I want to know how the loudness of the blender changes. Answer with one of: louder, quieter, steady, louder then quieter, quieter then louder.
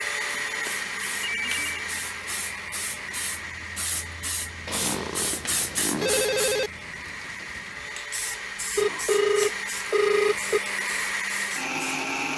quieter then louder.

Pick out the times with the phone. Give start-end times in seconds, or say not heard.
0.3-1.9, 4.7-6.7, 8.8-10.6.